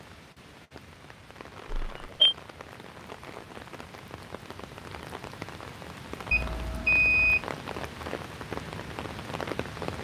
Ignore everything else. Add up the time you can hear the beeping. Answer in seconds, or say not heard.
2 s.